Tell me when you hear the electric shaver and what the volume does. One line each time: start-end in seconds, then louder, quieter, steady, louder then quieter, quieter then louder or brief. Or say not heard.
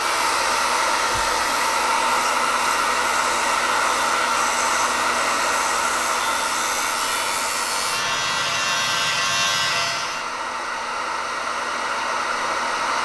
0.0-10.3 louder.